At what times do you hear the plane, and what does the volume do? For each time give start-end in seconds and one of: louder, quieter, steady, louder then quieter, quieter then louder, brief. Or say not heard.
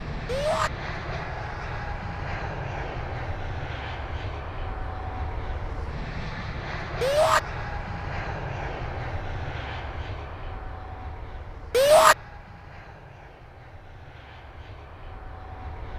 0.0-15.9 quieter.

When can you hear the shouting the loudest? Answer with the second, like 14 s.
12 s.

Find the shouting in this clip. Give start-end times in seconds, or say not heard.
0.2-0.7, 7.0-7.4, 11.7-12.2.